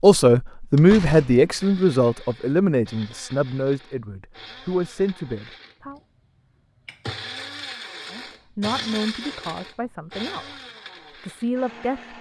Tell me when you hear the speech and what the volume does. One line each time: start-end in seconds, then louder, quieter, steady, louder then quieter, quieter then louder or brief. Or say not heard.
0.0-6.0 quieter
8.1-10.4 brief
11.2-12.1 brief.